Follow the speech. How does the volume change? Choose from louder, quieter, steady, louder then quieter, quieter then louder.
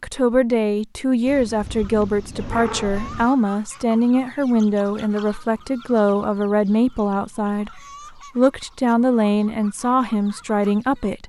steady.